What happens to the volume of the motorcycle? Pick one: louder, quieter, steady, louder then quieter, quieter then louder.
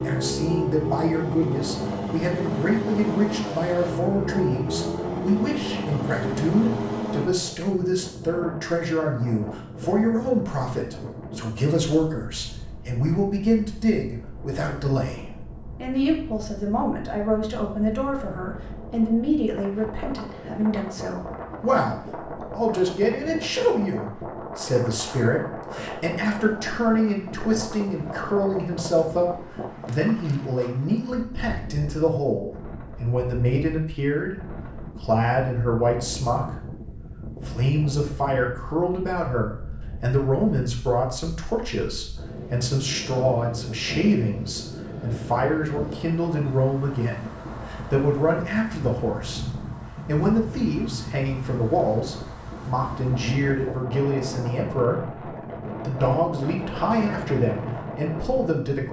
steady.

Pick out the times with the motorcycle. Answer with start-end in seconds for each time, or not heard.
0.0-7.3.